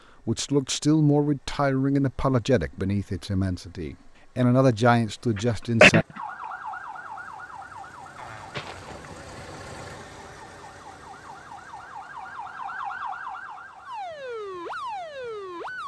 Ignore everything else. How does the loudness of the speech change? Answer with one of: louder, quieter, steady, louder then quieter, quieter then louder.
quieter then louder.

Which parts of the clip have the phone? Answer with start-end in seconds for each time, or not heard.
not heard.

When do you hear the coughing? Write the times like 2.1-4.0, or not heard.
5.3-6.0, 8.2-9.5.